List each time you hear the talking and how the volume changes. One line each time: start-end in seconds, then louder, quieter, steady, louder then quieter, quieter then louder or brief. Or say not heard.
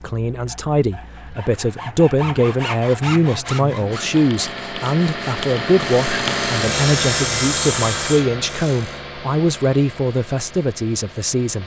0.0-11.6 steady.